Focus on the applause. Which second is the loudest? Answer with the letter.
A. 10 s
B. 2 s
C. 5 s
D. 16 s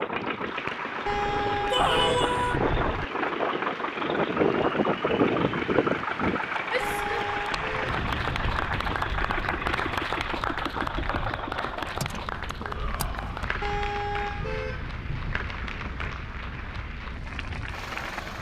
A.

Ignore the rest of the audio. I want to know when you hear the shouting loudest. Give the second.
2 s.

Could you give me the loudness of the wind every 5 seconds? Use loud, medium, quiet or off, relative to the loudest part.
loud, loud, quiet, quiet.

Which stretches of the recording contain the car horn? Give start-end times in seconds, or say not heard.
1.1-3.0, 6.8-8.6, 13.6-15.4.